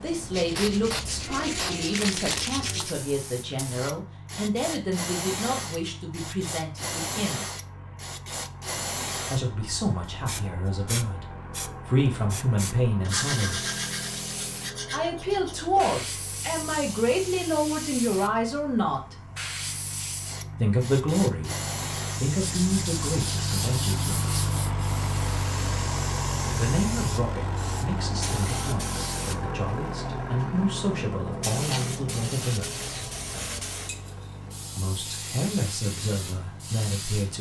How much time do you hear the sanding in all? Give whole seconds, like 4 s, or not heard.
10 s.